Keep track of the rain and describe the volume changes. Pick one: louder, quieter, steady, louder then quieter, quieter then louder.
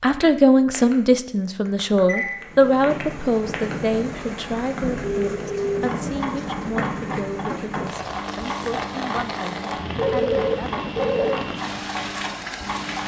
steady.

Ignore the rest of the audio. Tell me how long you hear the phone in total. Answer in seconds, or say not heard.
3 s.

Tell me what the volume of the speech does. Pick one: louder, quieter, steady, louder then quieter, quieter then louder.
quieter.